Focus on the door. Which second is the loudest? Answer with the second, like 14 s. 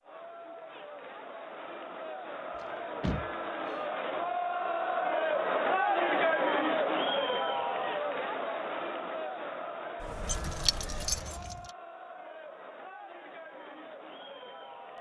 3 s.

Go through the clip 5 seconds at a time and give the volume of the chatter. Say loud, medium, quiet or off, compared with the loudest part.
medium, loud, quiet.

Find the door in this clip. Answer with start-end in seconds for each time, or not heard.
2.5-3.8, 10.0-11.2.